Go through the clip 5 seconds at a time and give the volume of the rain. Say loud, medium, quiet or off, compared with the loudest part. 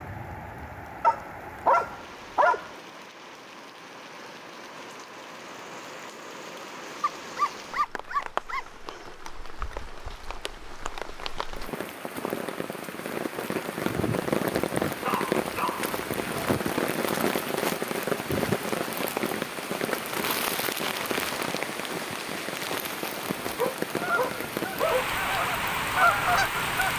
quiet, medium, loud, loud, loud, loud.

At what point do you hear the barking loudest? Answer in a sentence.
The volume of the barking peaks at 2 seconds.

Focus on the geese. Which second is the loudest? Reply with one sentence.
The volume of the geese peaks at 26 seconds.